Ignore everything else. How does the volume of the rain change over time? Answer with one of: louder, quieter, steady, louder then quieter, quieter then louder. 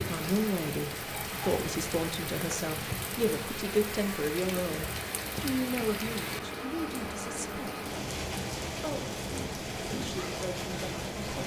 steady.